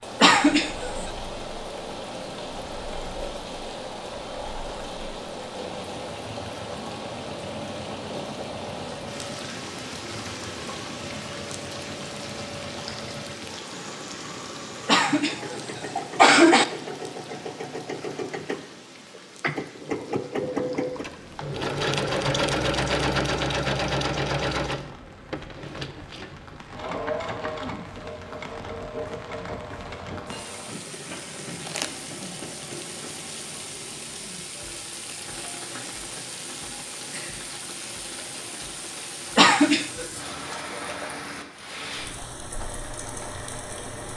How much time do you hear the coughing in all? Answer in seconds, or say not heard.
3 s.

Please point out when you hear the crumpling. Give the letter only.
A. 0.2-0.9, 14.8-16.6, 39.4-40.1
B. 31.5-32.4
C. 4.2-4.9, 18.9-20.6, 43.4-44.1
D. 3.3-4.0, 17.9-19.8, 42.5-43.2
B.